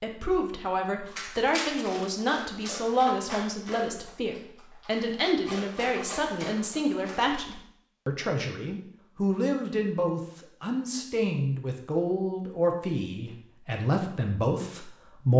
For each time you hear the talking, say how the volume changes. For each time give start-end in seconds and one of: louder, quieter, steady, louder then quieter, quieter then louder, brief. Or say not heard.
0.0-15.3 steady.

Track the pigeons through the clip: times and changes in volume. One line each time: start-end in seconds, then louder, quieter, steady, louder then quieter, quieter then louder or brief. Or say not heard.
not heard.